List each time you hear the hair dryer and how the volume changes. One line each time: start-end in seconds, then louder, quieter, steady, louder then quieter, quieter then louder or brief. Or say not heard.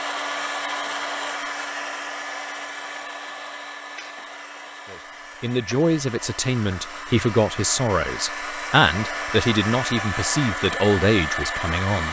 0.0-12.0 quieter then louder.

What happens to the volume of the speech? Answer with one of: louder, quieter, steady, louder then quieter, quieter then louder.
steady.